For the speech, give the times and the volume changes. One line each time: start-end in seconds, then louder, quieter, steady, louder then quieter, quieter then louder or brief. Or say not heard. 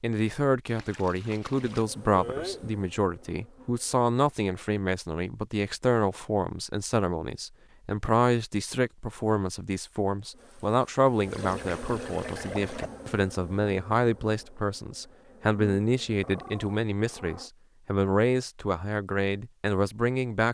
0.0-20.4 steady.